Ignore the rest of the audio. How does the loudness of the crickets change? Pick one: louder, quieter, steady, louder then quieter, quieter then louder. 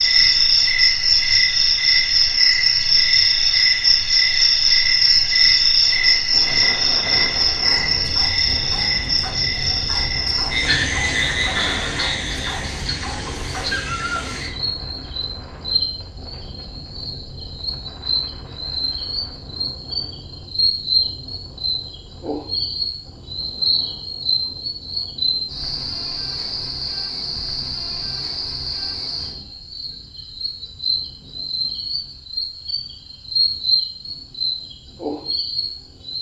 quieter.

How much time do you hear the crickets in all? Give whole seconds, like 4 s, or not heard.
36 s.